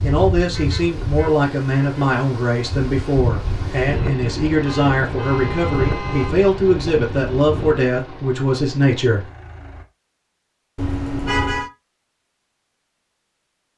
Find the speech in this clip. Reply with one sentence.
You can hear the speech from 0.0 to 9.2 s.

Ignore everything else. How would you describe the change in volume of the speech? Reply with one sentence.
The volume of the speech stays about the same.